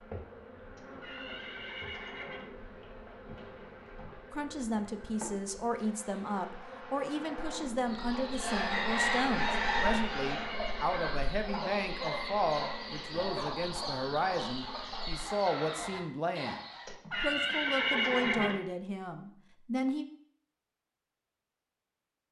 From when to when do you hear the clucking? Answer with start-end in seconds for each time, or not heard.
7.8-16.9.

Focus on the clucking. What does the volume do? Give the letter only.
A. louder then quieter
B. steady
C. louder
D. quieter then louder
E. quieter
E.